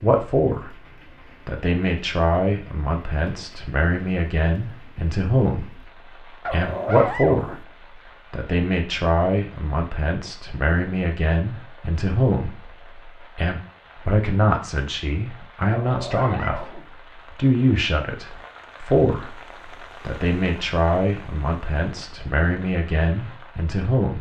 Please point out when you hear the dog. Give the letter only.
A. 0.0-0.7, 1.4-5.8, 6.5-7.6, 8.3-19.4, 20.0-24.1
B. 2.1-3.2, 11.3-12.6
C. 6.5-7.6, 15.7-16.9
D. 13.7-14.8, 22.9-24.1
C.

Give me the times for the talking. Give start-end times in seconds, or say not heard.
0.0-0.7, 1.4-5.8, 6.5-7.6, 8.3-19.4, 20.0-24.1.